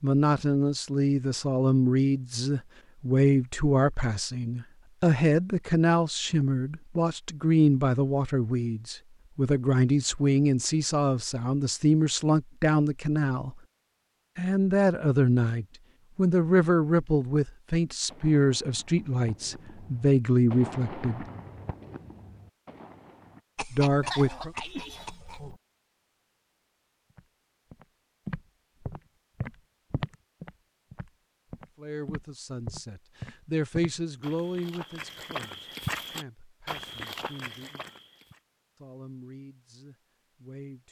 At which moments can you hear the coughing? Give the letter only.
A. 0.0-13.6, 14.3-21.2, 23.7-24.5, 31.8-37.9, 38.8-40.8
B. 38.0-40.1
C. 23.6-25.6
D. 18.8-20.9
C.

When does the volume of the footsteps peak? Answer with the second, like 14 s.
36 s.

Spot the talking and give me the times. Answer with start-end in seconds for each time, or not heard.
0.0-13.6, 14.3-21.2, 23.7-24.5, 31.8-37.9, 38.8-40.8.